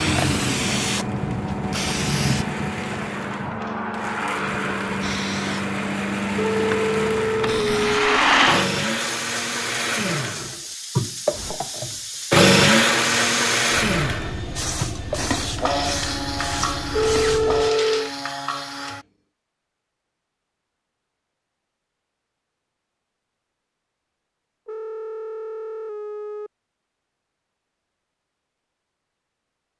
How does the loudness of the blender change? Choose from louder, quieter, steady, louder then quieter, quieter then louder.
louder then quieter.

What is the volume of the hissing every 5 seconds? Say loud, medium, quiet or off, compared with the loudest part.
loud, loud, medium, medium, off, off.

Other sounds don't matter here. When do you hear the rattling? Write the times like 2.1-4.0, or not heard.
7.5-8.7.